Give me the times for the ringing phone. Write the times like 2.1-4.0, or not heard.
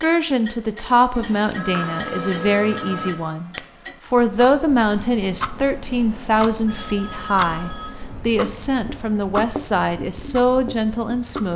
1.1-3.1, 6.7-7.9.